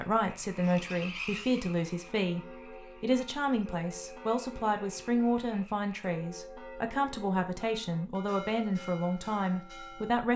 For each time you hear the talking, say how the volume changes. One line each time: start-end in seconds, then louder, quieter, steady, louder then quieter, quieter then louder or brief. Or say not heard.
0.0-10.3 steady.